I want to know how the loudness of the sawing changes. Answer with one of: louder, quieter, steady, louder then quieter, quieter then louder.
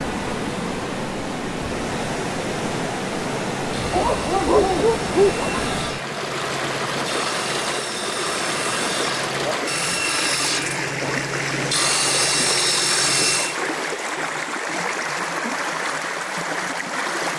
louder.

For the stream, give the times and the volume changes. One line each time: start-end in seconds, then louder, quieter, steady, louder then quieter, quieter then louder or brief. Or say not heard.
0.0-17.3 steady.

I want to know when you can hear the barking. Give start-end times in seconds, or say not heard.
3.9-5.7.